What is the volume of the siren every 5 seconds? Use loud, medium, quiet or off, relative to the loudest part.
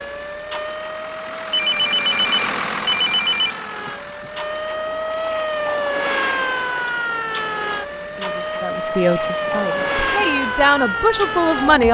medium, loud, loud.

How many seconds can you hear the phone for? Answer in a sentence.
The phone can be heard for 2 seconds in total.